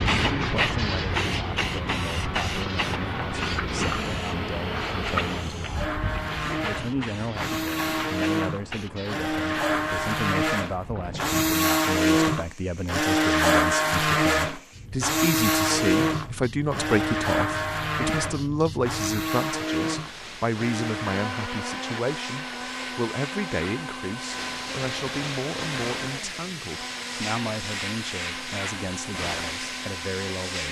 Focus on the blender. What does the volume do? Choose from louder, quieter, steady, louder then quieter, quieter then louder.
louder then quieter.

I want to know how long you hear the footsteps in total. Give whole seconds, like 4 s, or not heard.
not heard.